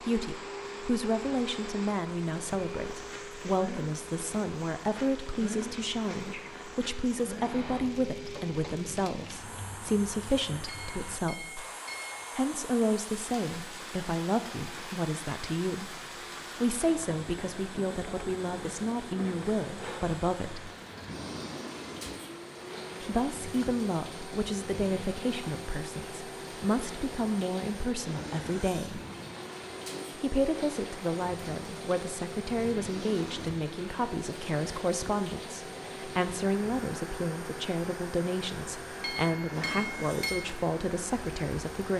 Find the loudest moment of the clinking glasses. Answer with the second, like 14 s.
40 s.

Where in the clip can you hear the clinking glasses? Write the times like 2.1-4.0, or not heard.
10.7-12.2, 39.0-40.5.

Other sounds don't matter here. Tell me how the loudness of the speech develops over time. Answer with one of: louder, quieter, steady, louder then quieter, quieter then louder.
steady.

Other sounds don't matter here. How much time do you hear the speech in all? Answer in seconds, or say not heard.
38 s.